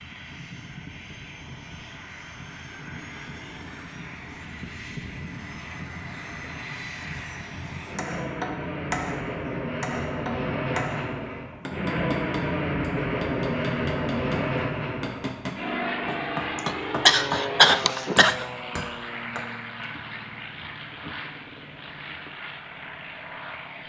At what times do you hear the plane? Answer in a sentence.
You can hear the plane from 0.0 to 23.8 s.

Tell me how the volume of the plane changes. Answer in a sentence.
The loudness of the plane goes up, then down.